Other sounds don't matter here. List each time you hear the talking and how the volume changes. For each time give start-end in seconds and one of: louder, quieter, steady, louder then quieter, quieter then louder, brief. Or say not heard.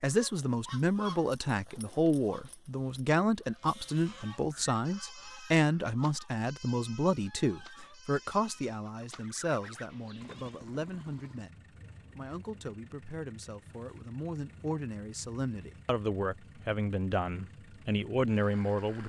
0.0-19.0 quieter then louder.